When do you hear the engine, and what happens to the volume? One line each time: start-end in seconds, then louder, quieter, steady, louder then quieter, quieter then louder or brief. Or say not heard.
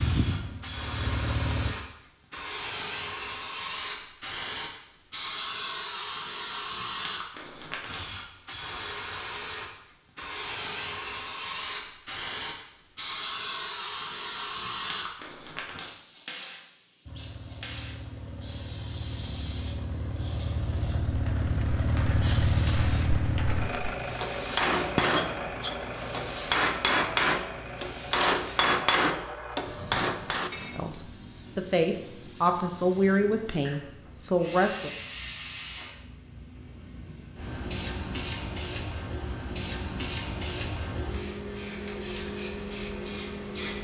0.0-1.8 brief
17.1-28.8 louder then quieter.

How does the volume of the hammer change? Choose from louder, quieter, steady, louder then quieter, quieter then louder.
louder.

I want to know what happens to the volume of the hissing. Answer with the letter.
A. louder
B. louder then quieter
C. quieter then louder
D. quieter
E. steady
C.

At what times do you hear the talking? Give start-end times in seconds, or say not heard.
30.7-34.9.